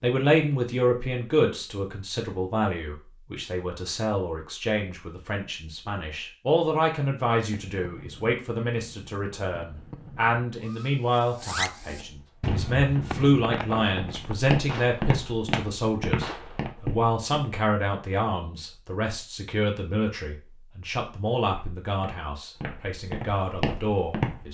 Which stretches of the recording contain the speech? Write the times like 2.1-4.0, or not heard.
0.0-24.5.